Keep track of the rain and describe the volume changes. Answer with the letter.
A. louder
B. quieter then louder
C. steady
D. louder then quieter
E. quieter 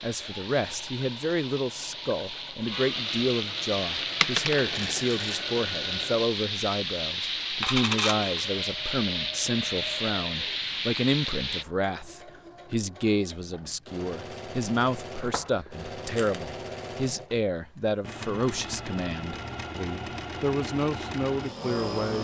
A.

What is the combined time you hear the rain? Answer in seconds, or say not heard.
12 s.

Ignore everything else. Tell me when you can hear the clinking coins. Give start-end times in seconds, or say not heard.
4.2-5.4, 7.6-8.4, 15.2-16.4.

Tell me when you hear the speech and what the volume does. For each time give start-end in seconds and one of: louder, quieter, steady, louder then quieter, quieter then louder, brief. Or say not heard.
0.0-22.1 steady.